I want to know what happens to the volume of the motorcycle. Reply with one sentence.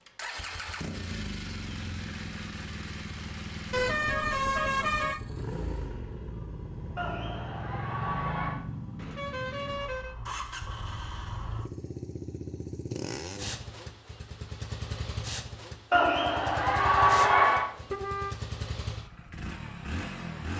The volume of the motorcycle stays about the same.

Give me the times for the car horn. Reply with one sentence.
The car horn can be heard from 3.7 to 5.2 s, from 8.9 to 10.2 s and from 16.8 to 18.4 s.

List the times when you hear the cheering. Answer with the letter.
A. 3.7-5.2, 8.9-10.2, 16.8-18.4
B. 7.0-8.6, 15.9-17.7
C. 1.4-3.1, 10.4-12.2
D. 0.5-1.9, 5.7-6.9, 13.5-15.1
B.